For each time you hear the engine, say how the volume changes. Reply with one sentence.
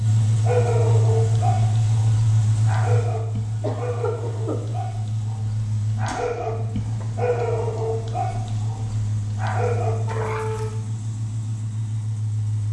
You can hear the engine from 0.0 to 12.6 s, getting quieter.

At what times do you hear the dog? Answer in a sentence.
You can hear the dog from 0.2 to 10.8 s.